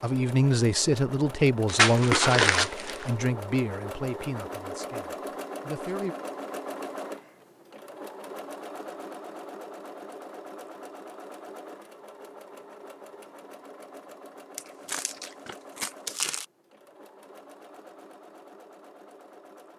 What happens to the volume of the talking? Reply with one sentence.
The loudness of the talking goes down.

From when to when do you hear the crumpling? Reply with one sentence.
You can hear the crumpling from 1.6 to 3.1 s and from 14.6 to 16.4 s.